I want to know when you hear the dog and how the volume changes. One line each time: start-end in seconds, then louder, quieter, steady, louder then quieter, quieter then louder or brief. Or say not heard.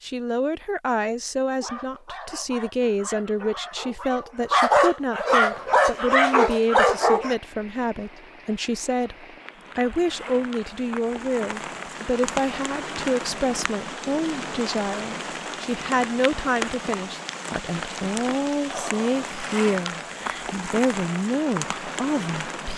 1.6-7.3 louder.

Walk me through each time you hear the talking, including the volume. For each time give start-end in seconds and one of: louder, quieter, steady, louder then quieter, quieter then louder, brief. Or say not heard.
0.0-22.7 steady.